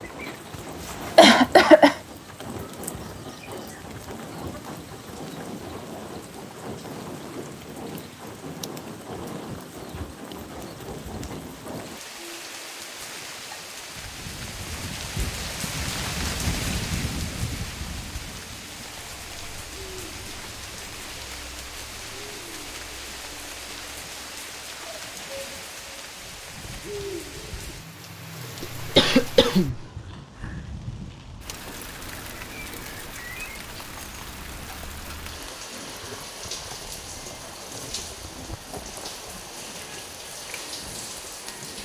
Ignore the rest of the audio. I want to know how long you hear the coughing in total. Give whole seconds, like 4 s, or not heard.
2 s.